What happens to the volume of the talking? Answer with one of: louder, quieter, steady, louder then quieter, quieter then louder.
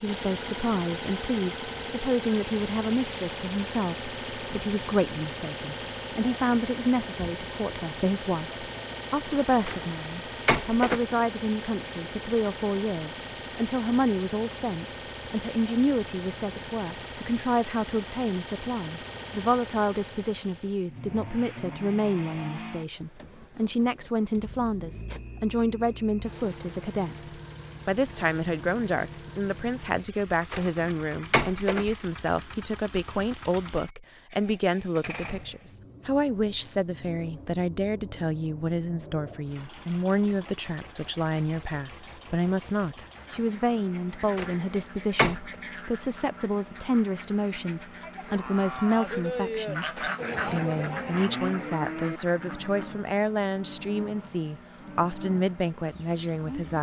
steady.